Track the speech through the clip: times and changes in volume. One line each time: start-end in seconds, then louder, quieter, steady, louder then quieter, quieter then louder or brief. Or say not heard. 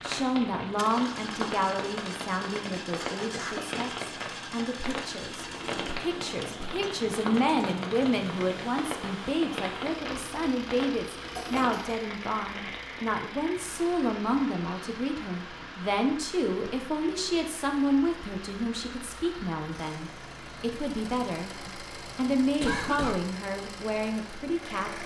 0.0-25.0 steady.